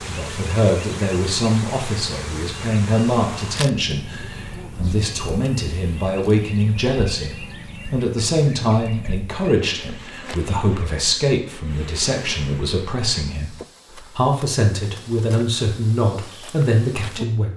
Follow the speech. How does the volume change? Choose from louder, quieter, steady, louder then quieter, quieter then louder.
steady.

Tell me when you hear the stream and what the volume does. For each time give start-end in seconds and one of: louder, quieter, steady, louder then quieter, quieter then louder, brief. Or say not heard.
not heard.